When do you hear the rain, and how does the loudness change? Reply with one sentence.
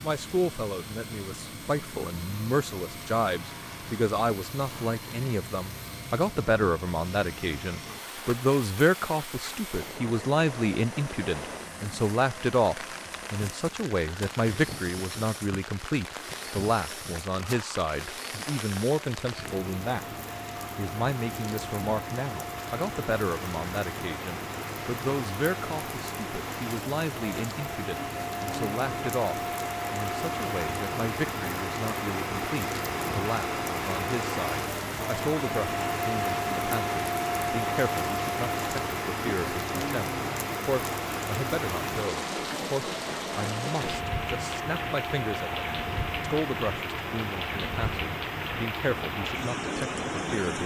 The rain can be heard from 0.0 to 50.6 s, getting louder.